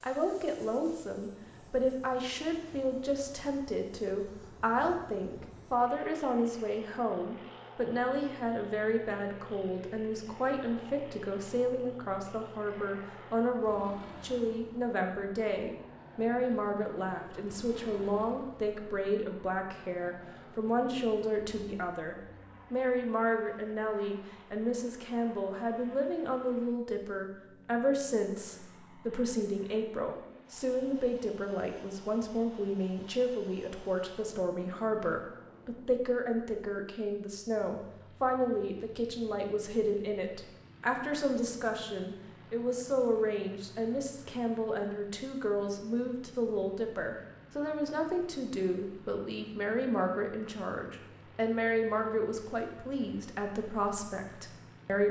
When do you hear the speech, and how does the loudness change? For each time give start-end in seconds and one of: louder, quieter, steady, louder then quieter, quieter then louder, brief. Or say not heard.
0.0-55.0 steady.